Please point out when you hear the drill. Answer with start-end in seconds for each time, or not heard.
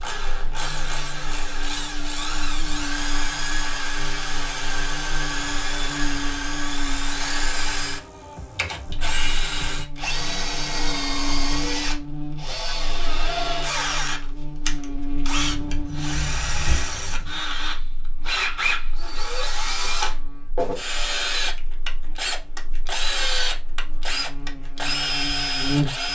0.0-26.1.